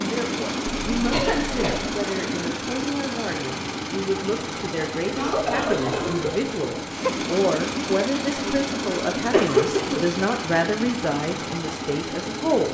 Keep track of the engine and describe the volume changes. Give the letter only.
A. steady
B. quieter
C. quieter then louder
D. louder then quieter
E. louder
A.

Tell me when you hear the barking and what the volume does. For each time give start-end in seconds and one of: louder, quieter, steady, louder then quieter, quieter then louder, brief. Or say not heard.
not heard.